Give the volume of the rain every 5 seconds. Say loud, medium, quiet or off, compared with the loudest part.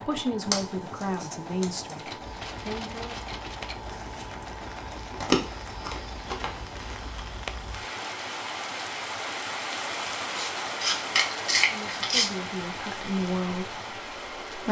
medium, loud, loud.